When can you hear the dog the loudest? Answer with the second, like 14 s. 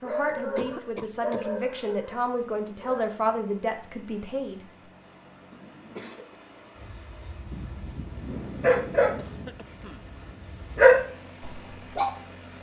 11 s.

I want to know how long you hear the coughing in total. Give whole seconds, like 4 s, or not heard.
3 s.